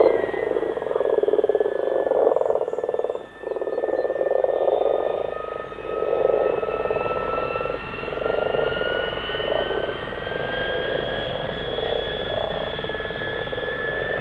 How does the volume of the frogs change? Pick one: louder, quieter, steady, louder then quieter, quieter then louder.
quieter.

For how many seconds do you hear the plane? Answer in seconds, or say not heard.
14 s.